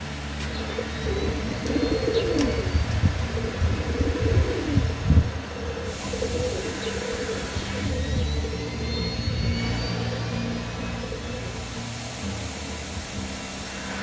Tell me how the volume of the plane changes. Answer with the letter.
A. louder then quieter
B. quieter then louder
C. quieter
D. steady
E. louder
A.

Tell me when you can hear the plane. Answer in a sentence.
You can hear the plane from 0.0 to 13.9 s.